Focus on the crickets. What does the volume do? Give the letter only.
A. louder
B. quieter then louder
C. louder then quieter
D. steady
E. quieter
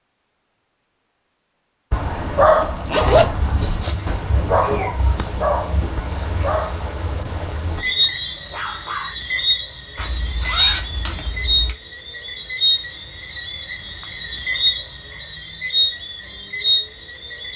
A.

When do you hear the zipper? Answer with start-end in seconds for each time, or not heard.
2.6-4.2, 9.9-11.8.